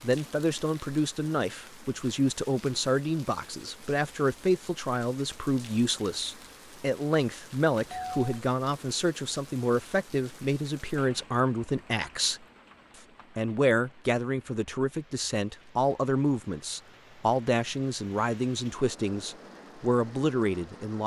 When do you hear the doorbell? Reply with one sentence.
The doorbell can be heard from 7.8 to 8.3 s.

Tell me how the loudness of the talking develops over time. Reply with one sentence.
The volume of the talking stays about the same.